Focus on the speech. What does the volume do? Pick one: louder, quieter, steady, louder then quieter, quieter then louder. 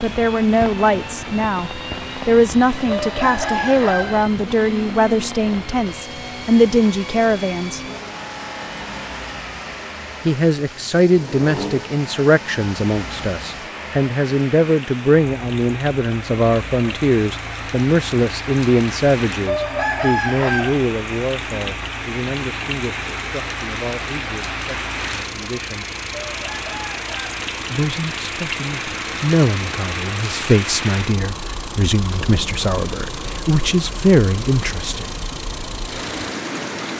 quieter then louder.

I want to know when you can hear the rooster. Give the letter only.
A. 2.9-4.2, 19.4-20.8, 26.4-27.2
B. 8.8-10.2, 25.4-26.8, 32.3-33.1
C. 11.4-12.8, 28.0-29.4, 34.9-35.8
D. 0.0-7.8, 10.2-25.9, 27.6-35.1
A.